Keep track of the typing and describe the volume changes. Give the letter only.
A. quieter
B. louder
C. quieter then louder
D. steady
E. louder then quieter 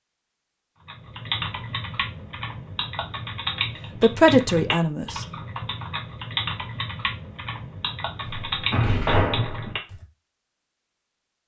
D.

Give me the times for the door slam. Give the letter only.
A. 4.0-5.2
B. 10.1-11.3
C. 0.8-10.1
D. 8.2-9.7
D.